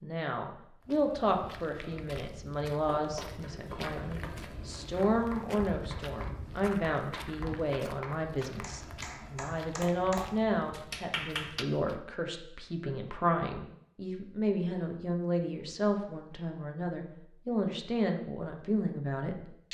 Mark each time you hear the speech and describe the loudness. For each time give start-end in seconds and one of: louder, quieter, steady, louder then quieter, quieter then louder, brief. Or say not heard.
0.0-19.6 steady.